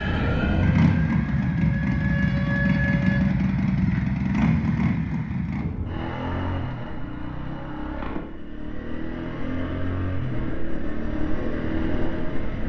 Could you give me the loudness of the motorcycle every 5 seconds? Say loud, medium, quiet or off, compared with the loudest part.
loud, medium, medium.